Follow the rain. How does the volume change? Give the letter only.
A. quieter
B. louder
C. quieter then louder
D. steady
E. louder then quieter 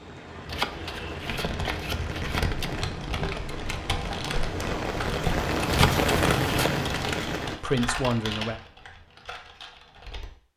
B.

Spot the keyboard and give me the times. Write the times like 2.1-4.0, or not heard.
1.2-10.3.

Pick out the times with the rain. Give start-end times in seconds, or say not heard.
0.0-7.6.